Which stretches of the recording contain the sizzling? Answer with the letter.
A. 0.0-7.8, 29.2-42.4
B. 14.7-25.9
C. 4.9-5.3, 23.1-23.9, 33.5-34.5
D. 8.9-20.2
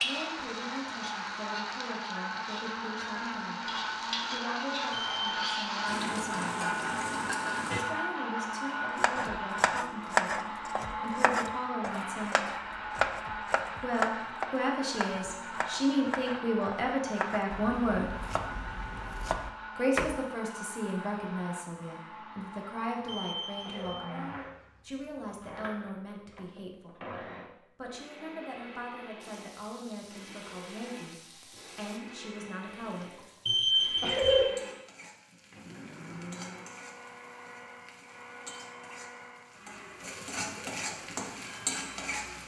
A.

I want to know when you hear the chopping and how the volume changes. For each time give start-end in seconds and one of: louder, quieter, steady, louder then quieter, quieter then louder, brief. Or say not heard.
8.9-20.2 quieter.